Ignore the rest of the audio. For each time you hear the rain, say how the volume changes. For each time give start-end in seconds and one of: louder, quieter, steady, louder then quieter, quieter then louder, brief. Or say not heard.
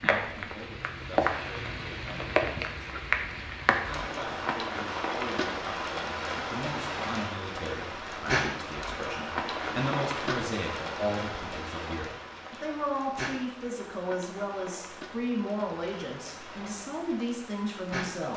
0.0-18.3 quieter.